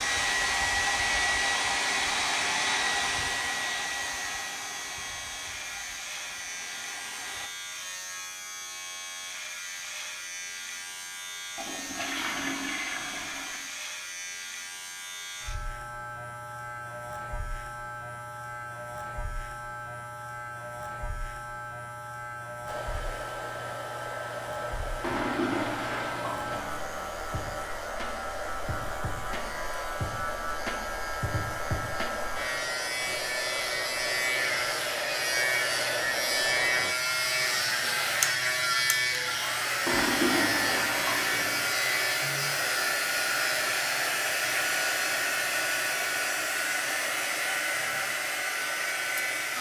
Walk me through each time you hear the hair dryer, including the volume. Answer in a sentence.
You can hear the hair dryer from 0.0 to 7.5 s, getting quieter; and from 22.6 to 49.5 s, getting louder.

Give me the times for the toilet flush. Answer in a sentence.
The toilet flush can be heard from 11.6 to 13.6 s, from 25.0 to 26.8 s and from 39.9 to 41.7 s.